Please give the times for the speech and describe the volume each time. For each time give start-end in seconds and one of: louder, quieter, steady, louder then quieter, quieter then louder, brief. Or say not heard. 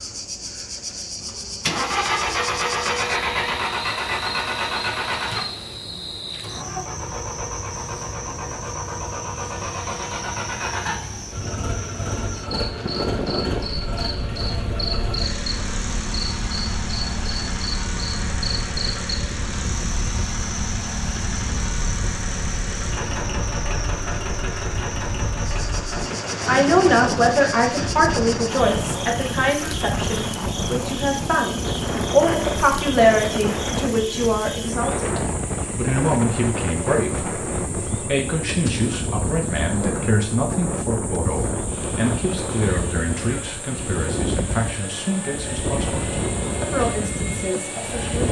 26.4-48.2 quieter.